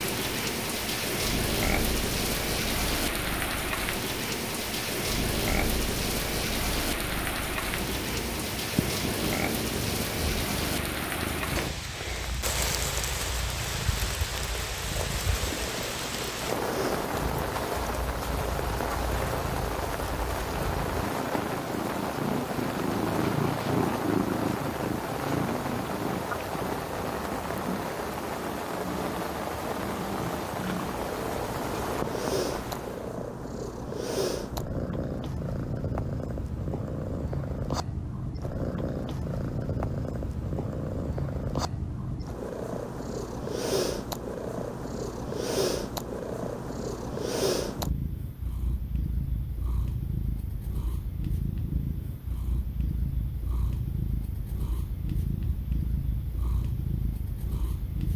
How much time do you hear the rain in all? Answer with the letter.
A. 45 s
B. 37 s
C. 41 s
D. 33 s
D.